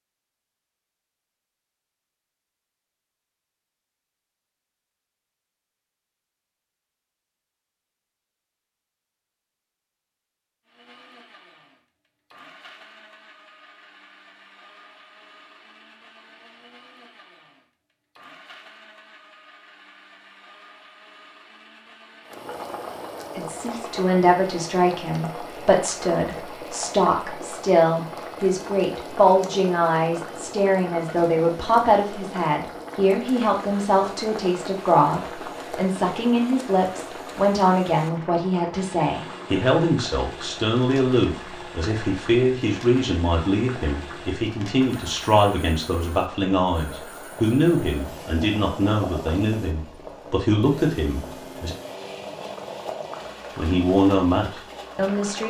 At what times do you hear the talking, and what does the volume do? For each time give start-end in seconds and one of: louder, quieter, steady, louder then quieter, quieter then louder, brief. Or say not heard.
23.4-51.8 steady
53.5-55.4 brief.